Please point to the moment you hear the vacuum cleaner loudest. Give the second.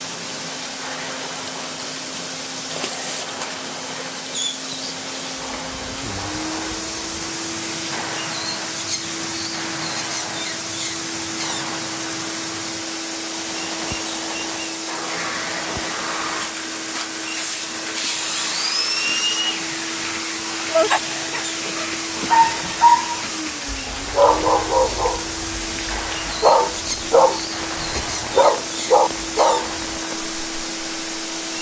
19 s.